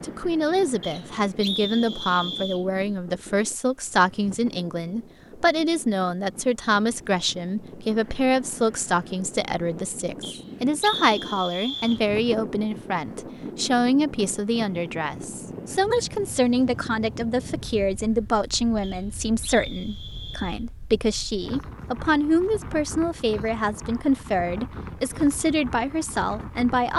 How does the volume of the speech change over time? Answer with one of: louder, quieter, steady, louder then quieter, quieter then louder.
steady.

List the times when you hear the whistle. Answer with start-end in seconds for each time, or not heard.
0.8-2.6, 10.2-12.1, 18.8-20.6.